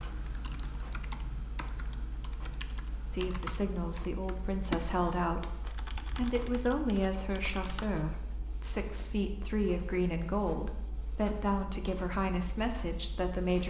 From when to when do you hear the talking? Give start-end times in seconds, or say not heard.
3.1-13.6.